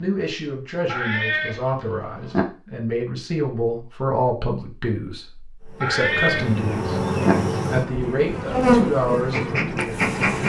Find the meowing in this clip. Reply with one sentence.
You can hear the meowing from 0.8 to 2.4 s and from 5.8 to 7.3 s.